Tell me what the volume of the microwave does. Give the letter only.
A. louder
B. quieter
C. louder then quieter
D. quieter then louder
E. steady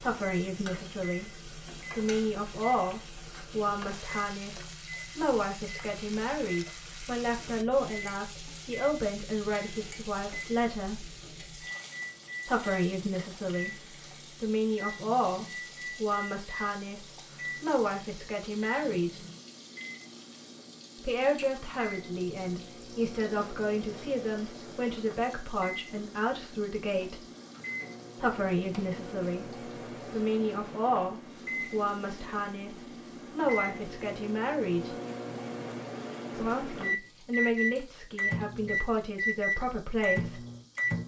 A.